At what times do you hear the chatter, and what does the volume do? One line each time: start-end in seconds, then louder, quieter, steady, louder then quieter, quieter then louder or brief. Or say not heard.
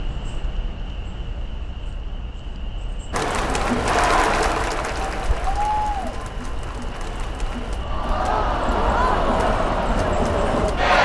3.1-11.0 quieter then louder.